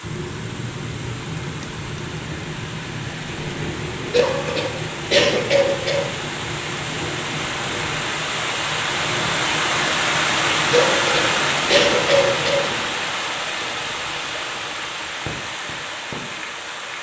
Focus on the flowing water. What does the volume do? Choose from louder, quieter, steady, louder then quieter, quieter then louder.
louder then quieter.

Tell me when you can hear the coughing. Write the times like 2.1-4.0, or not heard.
4.1-6.1, 10.7-12.7.